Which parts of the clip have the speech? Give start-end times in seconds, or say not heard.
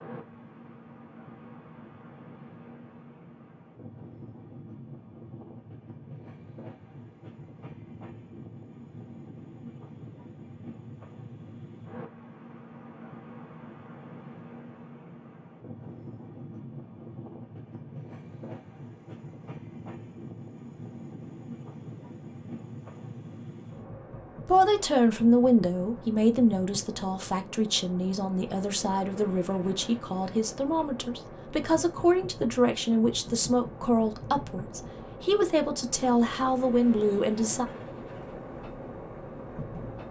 24.4-37.6.